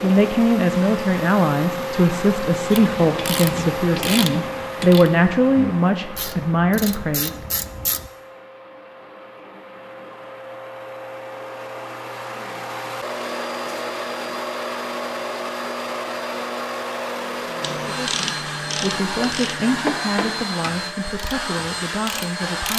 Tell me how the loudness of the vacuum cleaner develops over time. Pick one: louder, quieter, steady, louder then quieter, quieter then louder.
quieter then louder.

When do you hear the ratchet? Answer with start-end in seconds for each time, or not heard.
2.7-8.1, 17.6-22.7.